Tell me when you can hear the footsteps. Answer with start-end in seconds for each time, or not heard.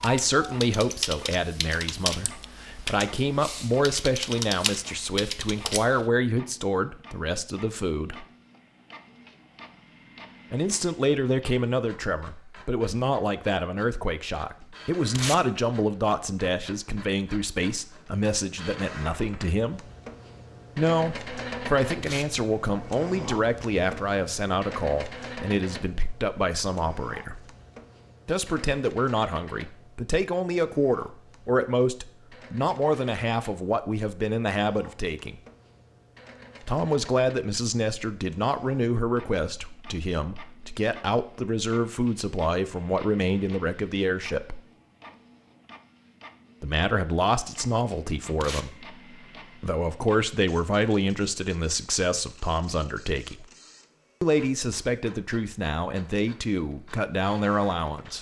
not heard.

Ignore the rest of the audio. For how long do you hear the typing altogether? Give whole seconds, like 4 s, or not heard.
6 s.